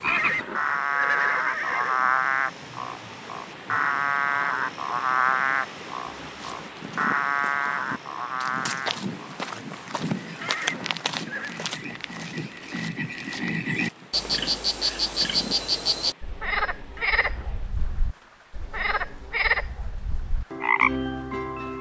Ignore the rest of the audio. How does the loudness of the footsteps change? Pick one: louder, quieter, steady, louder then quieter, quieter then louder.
louder then quieter.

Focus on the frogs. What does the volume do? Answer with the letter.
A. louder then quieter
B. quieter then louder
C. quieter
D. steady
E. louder
B.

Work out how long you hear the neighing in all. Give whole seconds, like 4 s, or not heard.
4 s.